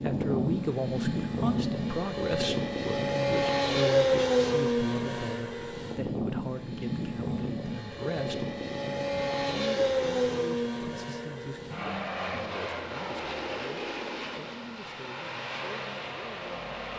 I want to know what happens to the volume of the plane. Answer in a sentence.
The loudness of the plane goes down.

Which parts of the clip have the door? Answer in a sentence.
You can't hear the door here.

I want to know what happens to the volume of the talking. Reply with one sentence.
The loudness of the talking goes down.